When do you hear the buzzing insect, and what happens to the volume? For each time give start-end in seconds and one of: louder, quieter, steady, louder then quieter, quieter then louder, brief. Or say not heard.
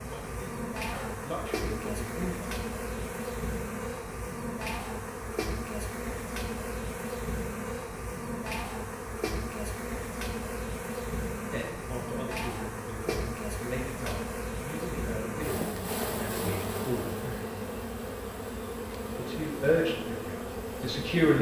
0.0-21.3 steady.